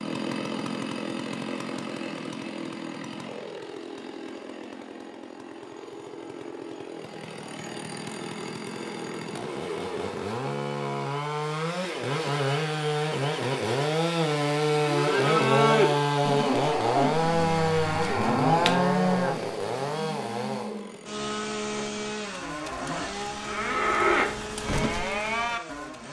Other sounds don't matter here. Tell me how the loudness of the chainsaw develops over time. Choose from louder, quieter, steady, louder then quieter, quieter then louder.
louder then quieter.